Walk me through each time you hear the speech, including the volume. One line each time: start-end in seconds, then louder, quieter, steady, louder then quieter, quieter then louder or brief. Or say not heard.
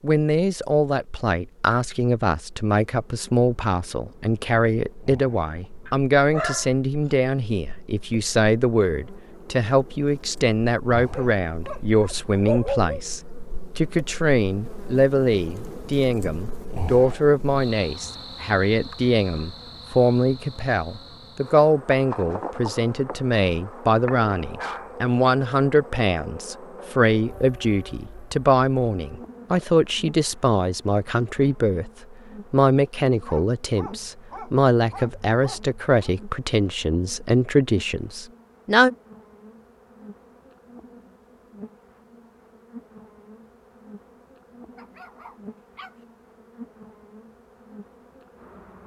0.0-38.9 steady.